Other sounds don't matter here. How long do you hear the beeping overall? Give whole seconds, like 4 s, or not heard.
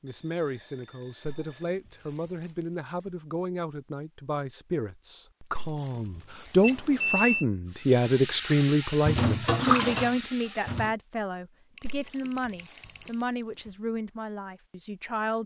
4 s.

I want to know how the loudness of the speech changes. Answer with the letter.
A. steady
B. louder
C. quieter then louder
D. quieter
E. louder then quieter
E.